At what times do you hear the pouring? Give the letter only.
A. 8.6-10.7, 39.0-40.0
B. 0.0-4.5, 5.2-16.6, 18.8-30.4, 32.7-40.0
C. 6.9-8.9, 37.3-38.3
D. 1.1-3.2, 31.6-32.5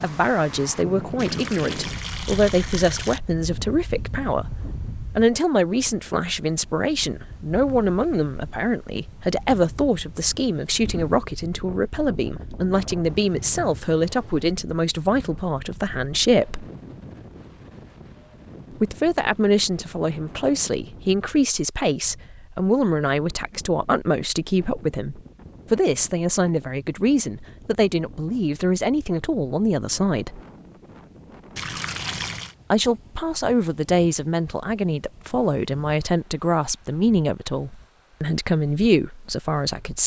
D.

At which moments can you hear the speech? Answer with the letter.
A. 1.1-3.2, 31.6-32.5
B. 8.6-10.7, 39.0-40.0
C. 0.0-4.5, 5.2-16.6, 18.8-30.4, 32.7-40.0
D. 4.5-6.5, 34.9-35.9
C.